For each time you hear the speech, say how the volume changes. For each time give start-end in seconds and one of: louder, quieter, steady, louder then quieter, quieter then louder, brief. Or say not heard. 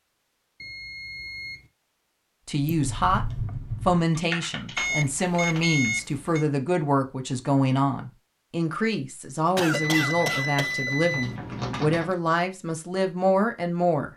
2.5-3.2 brief
3.9-14.1 steady.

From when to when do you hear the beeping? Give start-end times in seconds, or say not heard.
0.6-1.7, 4.8-6.5, 9.7-11.4.